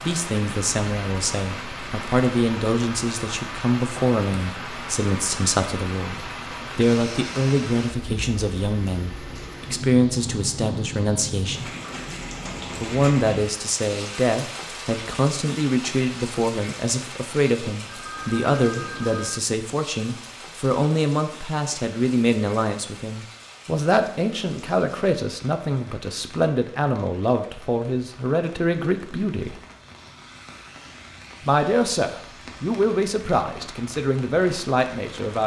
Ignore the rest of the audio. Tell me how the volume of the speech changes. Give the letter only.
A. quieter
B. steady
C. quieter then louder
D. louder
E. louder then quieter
B.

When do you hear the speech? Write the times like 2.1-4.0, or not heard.
0.0-11.7, 12.8-29.6, 31.4-35.4.